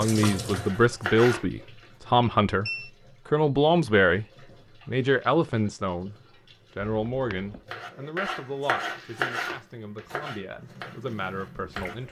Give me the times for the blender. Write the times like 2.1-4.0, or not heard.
not heard.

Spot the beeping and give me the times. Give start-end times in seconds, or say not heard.
2.2-2.9, 6.8-7.6.